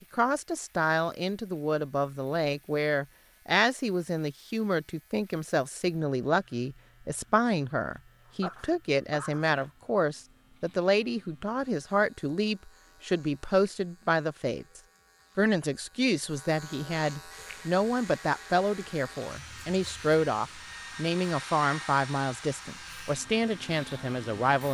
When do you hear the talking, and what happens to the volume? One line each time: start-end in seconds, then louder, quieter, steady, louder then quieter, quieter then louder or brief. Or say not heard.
0.1-24.6 steady.